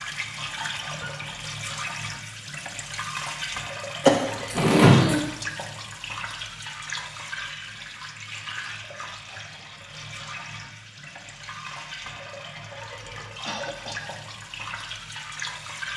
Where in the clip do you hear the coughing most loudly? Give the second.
5 s.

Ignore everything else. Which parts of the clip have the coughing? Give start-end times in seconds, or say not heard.
4.0-5.2, 13.4-14.1.